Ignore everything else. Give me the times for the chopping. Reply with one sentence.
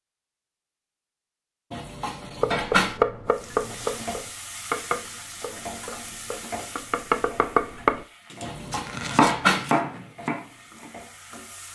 The chopping can be heard from 2.4 to 10.9 s.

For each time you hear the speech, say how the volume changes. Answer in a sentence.
You can't hear the speech here.